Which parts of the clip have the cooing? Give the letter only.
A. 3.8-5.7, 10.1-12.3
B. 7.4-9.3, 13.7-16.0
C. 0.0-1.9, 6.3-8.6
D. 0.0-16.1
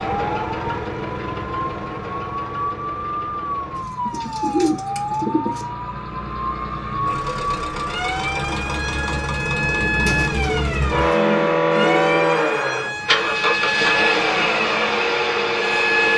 A.